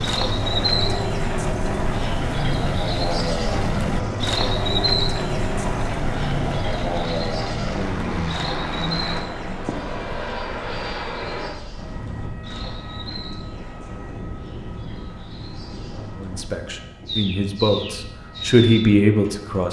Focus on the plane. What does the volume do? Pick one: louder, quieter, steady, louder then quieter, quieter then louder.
quieter.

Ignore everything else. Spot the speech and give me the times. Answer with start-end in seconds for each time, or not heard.
16.1-19.6.